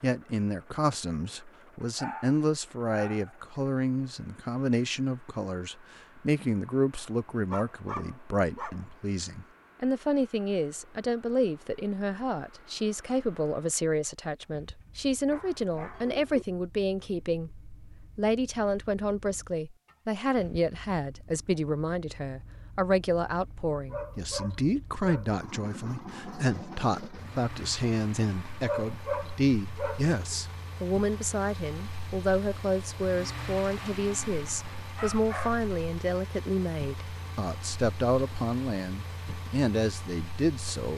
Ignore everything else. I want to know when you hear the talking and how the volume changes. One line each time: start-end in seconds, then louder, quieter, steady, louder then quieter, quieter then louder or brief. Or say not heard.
0.0-40.9 steady.